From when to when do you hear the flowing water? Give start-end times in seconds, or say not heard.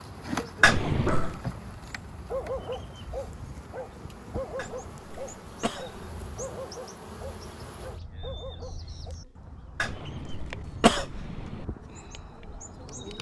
not heard.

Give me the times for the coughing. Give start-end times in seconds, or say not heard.
0.6-1.4, 4.5-6.0, 9.8-11.7.